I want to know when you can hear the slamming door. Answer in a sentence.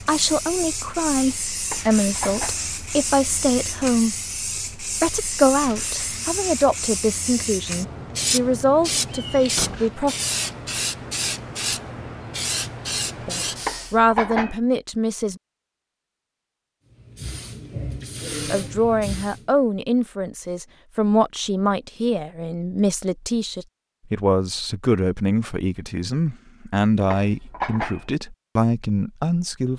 You can hear the slamming door from 9.6 to 10.0 s.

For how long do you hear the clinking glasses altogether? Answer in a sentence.
The clinking glasses can be heard for 3 seconds in total.